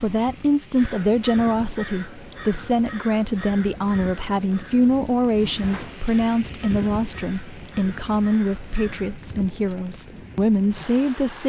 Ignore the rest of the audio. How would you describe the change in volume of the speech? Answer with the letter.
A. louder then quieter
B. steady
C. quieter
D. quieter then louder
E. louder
B.